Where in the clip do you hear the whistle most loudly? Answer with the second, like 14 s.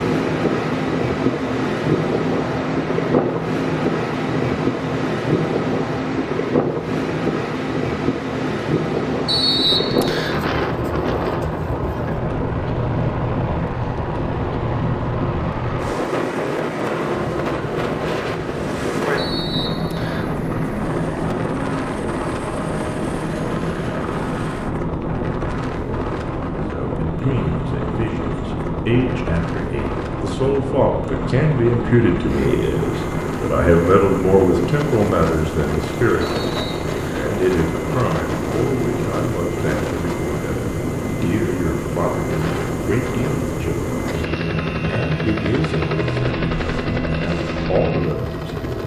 10 s.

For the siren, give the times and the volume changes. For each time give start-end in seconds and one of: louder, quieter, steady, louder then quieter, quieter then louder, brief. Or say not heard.
not heard.